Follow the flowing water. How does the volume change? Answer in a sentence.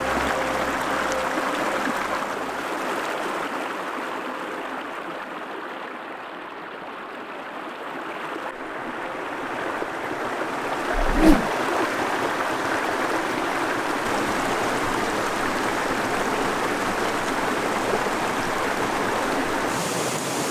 The volume of the flowing water goes down, then up.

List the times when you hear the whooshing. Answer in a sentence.
You can hear the whooshing from 10.9 to 11.5 s.